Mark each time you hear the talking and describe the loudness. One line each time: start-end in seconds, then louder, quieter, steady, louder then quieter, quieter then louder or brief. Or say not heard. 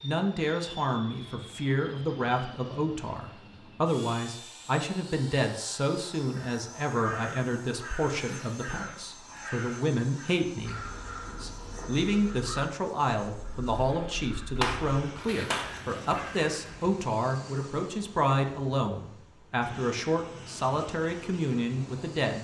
0.0-22.3 steady.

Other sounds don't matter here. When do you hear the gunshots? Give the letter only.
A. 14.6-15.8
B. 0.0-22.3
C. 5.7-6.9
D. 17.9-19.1
A.